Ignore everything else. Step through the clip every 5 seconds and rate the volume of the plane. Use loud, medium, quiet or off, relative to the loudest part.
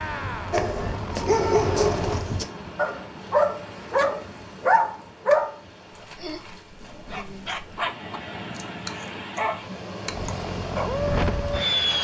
medium, off, loud.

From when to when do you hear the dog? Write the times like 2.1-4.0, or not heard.
0.5-10.9.